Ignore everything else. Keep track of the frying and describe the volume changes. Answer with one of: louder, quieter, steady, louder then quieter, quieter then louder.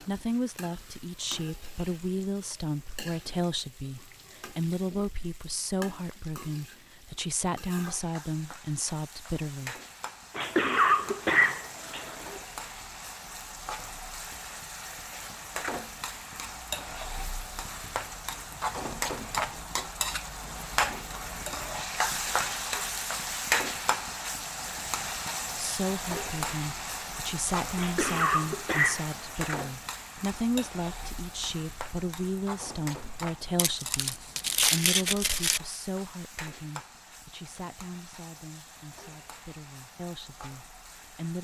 louder then quieter.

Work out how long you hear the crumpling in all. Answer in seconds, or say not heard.
2 s.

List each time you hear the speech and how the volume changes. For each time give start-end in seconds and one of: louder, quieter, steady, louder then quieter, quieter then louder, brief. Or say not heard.
0.0-9.8 steady
25.6-41.3 quieter.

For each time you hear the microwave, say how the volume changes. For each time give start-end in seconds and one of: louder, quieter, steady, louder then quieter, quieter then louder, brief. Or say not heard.
not heard.